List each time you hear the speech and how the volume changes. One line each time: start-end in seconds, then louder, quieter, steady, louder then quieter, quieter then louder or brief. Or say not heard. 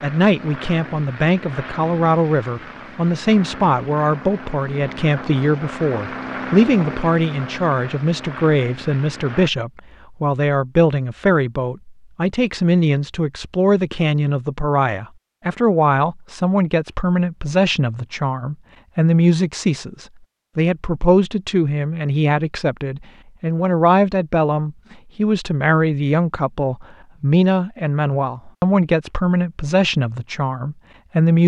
0.0-31.4 steady.